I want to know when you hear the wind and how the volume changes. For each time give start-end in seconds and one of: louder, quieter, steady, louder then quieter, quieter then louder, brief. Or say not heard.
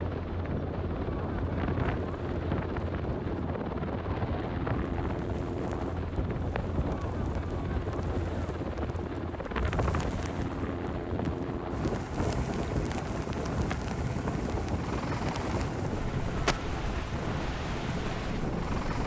0.0-19.0 steady.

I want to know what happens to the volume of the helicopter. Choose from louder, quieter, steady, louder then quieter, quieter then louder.
steady.